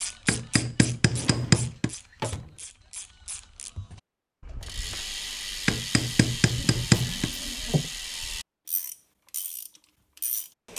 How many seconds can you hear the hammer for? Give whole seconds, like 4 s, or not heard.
3 s.